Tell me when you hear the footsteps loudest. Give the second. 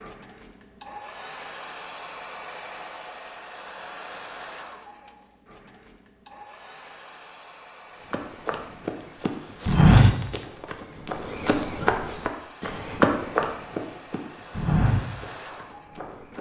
10 s.